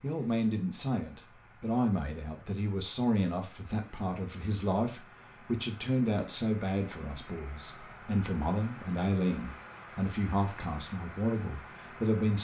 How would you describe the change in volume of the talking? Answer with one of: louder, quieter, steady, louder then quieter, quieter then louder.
steady.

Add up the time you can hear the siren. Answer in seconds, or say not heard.
not heard.